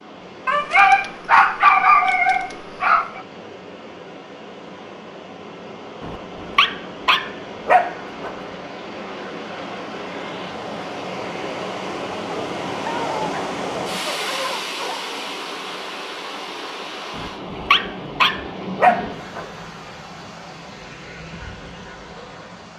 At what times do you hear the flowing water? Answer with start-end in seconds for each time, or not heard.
0.0-22.7.